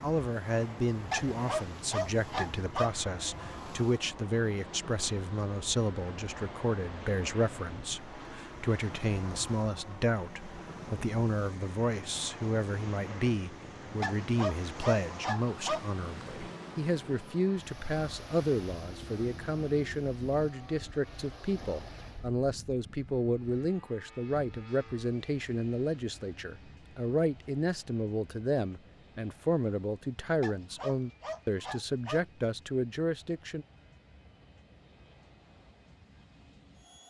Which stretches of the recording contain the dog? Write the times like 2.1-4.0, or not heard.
1.1-2.9, 14.0-15.8, 30.4-32.2.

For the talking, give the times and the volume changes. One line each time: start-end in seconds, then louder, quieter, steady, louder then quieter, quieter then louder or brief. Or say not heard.
0.0-33.6 steady.